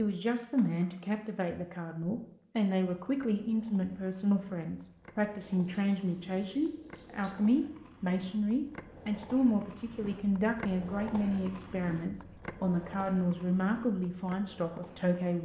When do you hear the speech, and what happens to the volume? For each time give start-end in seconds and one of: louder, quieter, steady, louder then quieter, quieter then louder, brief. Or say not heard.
0.0-15.3 steady.